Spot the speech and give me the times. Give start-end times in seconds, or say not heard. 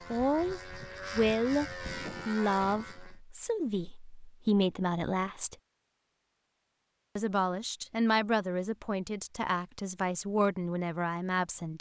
0.1-5.5, 7.2-11.7.